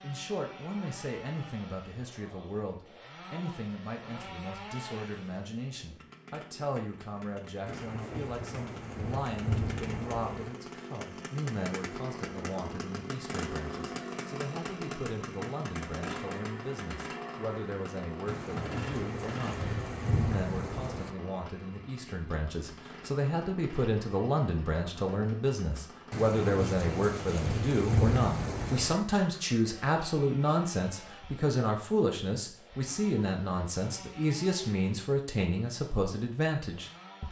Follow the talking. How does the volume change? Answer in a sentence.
The volume of the talking goes up.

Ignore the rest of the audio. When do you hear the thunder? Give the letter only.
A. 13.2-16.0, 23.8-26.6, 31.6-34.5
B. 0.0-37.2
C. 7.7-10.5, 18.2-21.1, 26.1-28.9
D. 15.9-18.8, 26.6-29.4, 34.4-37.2
C.